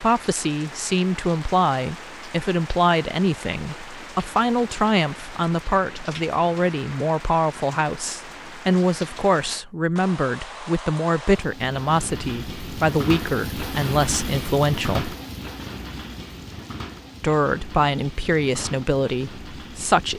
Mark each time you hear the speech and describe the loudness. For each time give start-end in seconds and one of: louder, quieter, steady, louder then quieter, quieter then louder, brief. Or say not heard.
0.0-15.2 steady
17.2-20.1 brief.